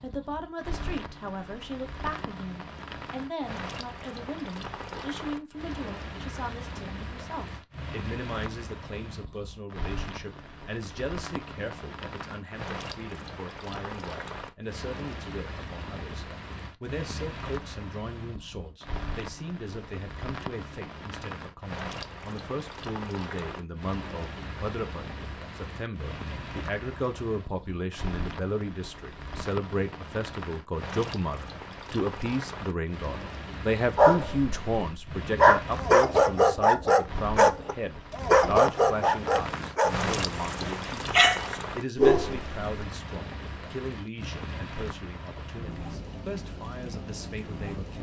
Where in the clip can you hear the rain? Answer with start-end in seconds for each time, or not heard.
0.0-47.9.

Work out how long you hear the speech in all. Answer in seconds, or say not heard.
48 s.